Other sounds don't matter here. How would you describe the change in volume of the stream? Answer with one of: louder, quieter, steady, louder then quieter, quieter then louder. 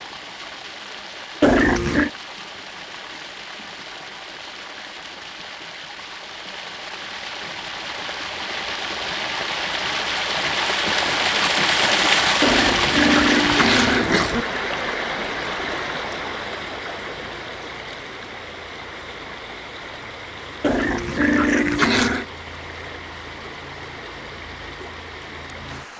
louder then quieter.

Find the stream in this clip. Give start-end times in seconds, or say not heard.
0.0-25.9.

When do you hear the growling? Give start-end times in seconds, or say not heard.
1.4-2.1, 12.4-14.4, 20.6-22.2.